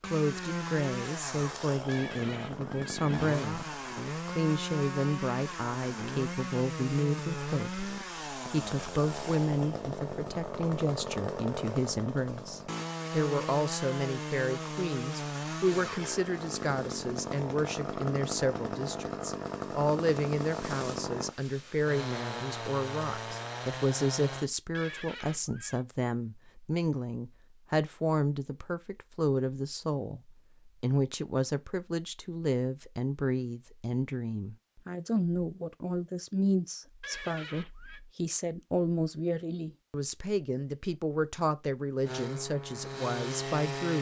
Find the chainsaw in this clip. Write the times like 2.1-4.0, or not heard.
0.0-24.5, 42.0-43.9.